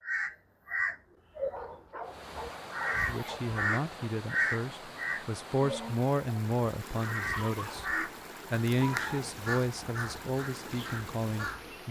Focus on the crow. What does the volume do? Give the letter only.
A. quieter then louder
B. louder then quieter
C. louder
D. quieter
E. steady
D.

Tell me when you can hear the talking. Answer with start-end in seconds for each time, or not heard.
3.0-11.8.